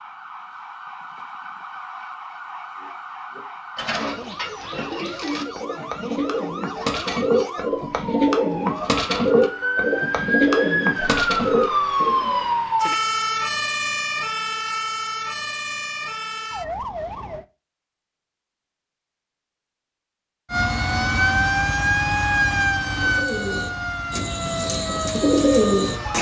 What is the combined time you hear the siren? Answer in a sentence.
You can hear the siren for 23 seconds altogether.